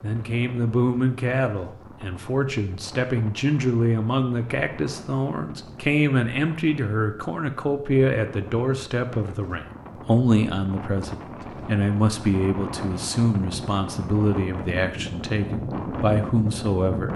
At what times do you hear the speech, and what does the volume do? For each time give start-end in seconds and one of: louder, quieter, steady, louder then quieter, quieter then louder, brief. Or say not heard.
0.0-17.1 steady.